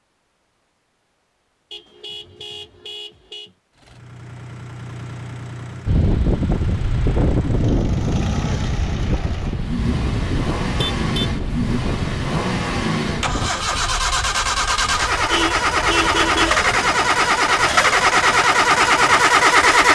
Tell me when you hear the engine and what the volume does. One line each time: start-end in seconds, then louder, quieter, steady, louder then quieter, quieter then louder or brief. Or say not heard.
3.8-19.8 louder.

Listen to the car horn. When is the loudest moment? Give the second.
16 s.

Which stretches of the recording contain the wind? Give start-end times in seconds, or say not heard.
5.8-19.8.